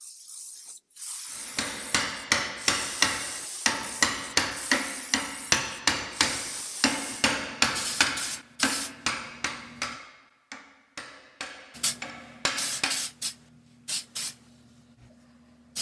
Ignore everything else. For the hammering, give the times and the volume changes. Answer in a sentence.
The hammering can be heard from 1.4 to 13.1 s, getting quieter.